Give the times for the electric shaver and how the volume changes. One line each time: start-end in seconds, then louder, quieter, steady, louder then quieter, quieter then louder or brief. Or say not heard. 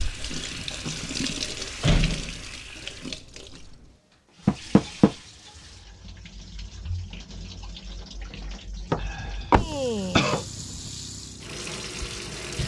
not heard.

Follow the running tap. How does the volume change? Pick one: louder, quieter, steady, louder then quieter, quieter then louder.
quieter then louder.